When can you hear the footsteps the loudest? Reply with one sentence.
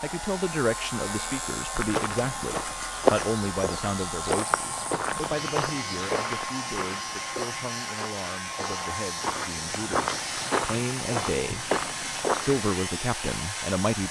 The loudest moment of the footsteps is at 3 seconds.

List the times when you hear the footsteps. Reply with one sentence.
You can hear the footsteps from 1.8 to 12.7 s.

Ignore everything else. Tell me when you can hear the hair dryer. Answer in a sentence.
You can hear the hair dryer from 0.0 to 14.0 s.